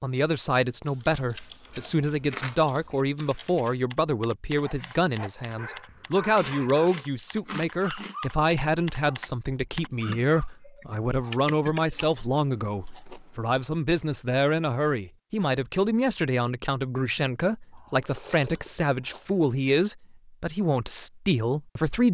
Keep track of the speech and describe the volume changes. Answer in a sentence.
The volume of the speech stays about the same.